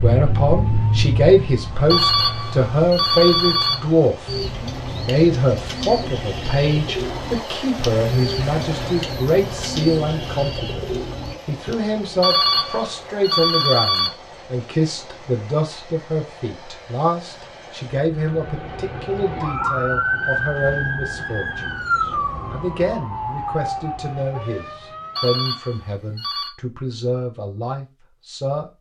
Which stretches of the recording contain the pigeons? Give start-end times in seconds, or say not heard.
4.2-11.8.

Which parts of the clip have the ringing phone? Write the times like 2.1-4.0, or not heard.
1.9-3.8, 12.2-14.1, 25.1-26.5.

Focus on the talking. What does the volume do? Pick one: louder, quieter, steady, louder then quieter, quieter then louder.
quieter.